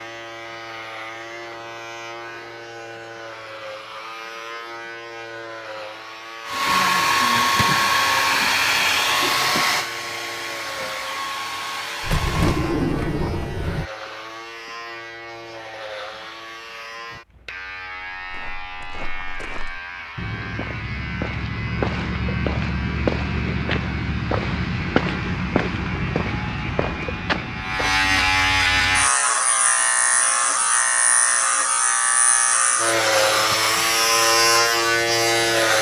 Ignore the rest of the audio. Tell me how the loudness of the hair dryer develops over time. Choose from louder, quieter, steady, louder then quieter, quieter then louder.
quieter.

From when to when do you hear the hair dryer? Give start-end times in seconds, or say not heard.
6.5-12.8.